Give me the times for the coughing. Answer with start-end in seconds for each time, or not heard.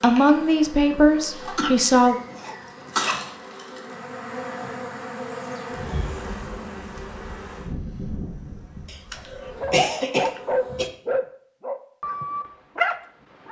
1.6-3.1, 8.8-10.9.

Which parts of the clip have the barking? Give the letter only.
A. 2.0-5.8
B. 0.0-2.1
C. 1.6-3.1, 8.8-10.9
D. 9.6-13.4
D.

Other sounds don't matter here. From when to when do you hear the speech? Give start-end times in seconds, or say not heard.
0.0-2.1.